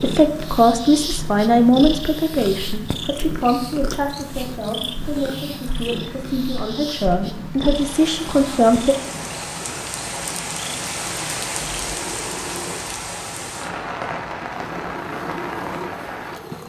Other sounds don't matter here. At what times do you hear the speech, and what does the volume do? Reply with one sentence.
The speech can be heard from 0.0 to 8.9 s, getting quieter then louder.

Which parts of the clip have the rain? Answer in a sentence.
The rain can be heard from 0.1 to 16.6 s.